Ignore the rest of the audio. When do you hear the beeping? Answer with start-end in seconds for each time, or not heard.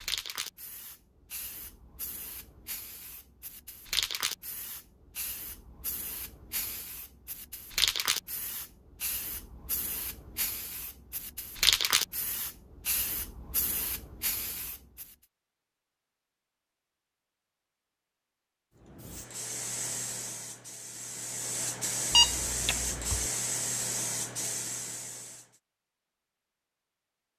22.1-23.2.